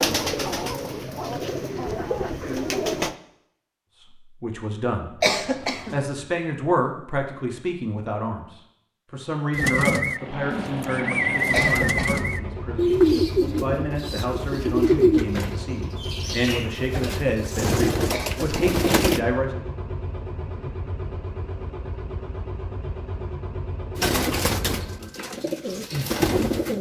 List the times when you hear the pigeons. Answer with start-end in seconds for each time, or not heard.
0.0-3.1, 9.5-19.2, 23.9-26.7.